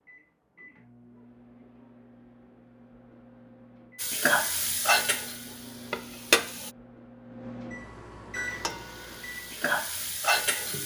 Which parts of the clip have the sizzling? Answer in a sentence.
You can hear the sizzling from 4.0 to 6.7 s and from 8.3 to 10.8 s.